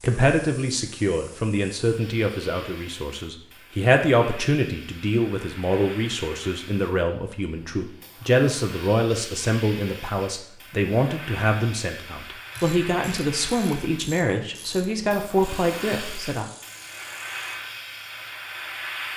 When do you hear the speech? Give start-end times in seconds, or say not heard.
0.0-16.4.